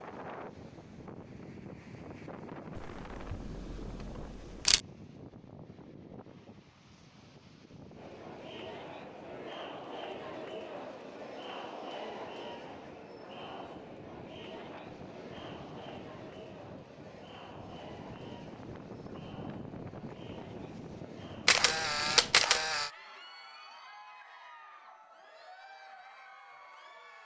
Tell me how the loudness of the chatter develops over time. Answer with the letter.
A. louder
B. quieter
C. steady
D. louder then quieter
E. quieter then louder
B.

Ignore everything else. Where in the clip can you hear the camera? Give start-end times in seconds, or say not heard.
2.8-4.8, 21.4-22.9.